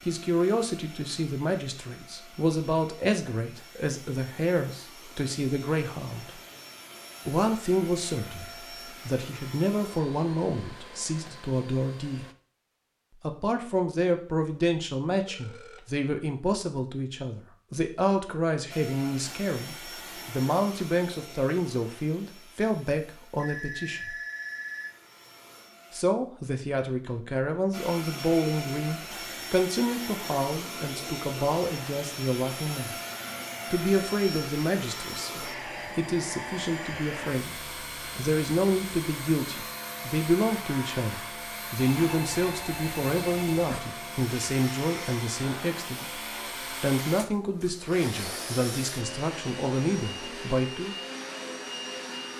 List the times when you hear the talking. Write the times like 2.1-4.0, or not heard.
0.1-6.4, 7.2-12.2, 13.2-24.1, 25.9-33.0, 33.7-46.0, 46.8-51.0.